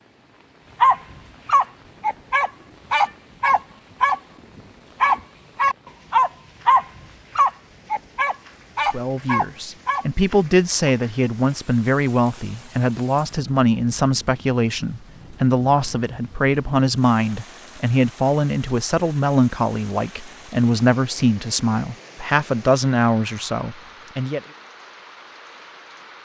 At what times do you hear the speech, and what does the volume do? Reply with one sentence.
The speech can be heard from 8.9 to 24.4 s, at a steady volume.